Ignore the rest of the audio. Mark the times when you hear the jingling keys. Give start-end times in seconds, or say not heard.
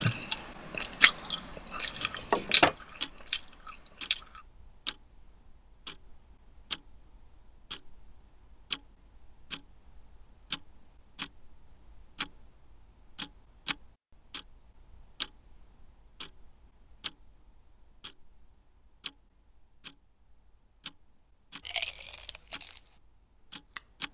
1.9-2.8.